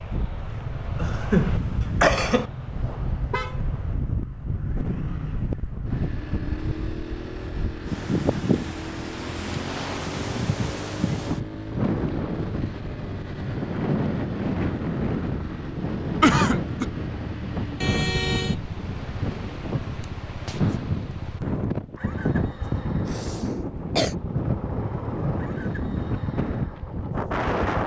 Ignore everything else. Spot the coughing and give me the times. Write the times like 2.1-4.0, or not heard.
0.9-2.5, 16.2-16.9, 23.1-24.1.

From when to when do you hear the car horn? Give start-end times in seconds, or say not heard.
2.2-3.6, 17.8-18.6.